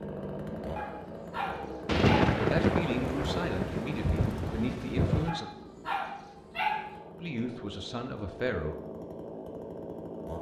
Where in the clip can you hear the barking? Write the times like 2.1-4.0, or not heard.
0.8-2.4, 5.2-6.9.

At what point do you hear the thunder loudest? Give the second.
2 s.